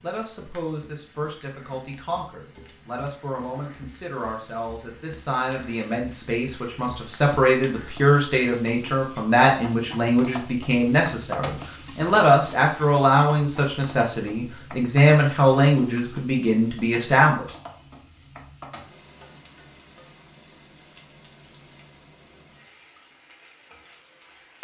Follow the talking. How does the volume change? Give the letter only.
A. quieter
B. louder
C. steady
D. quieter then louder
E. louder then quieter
B.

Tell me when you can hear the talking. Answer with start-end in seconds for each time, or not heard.
0.0-17.4.